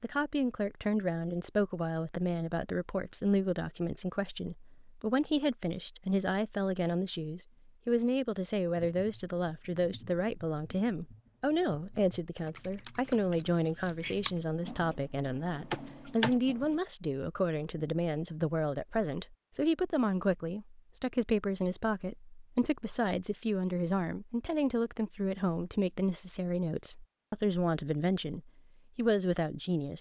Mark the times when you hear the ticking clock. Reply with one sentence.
You can't hear the ticking clock here.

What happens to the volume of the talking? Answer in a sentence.
The loudness of the talking stays about the same.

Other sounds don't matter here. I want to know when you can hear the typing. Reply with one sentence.
The typing can be heard from 8.8 to 16.8 s.